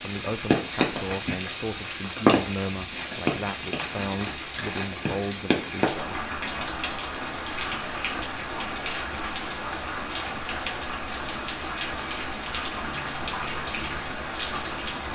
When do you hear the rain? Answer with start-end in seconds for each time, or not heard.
0.0-15.0.